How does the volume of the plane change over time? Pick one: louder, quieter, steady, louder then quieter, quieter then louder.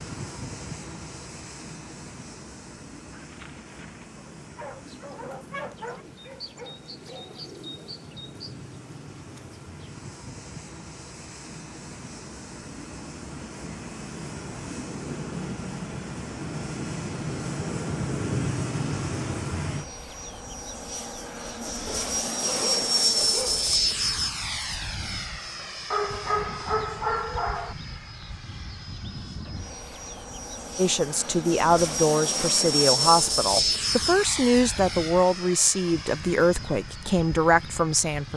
louder.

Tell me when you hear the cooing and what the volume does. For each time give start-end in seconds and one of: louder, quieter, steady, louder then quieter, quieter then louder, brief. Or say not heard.
4.8-9.9 louder then quieter.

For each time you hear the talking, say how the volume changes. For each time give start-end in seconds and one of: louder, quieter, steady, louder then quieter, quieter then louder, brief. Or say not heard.
30.8-38.3 steady.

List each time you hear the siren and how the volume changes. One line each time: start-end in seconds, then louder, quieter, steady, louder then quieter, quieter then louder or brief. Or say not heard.
not heard.